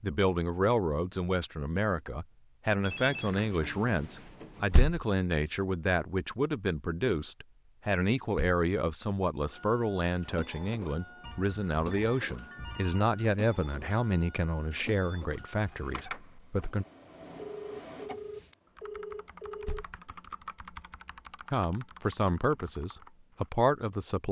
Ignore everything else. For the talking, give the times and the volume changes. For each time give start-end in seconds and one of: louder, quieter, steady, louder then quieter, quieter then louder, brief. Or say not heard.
0.0-16.9 steady
21.5-24.2 brief.